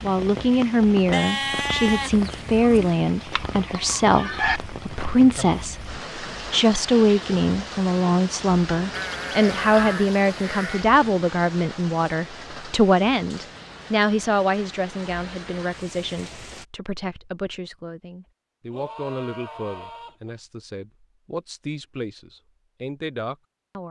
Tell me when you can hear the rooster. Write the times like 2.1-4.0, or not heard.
2.6-4.6.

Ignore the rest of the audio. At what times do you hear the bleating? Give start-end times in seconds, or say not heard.
1.1-3.0, 8.9-10.8, 18.7-20.4.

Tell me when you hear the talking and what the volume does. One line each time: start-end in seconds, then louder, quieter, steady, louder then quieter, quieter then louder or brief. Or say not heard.
0.0-23.8 quieter.